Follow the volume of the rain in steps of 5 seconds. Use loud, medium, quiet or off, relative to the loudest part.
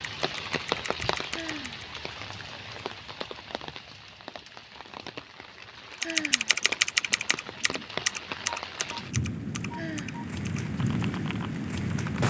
medium, medium, loud.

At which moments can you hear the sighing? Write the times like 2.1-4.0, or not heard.
1.3-1.9, 6.0-6.7, 9.8-10.3.